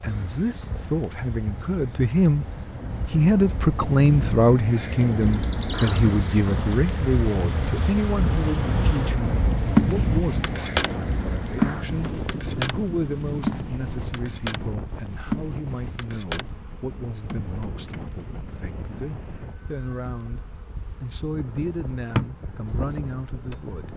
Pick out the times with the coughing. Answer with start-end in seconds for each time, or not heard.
not heard.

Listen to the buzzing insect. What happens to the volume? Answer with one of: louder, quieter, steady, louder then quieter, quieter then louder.
louder then quieter.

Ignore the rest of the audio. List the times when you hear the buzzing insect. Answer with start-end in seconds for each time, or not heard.
0.0-23.9.